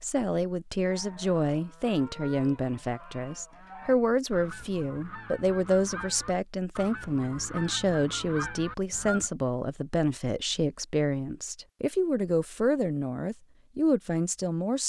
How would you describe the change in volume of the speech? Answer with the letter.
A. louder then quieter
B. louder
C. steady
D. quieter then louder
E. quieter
C.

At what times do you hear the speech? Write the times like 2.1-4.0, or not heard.
0.0-14.8.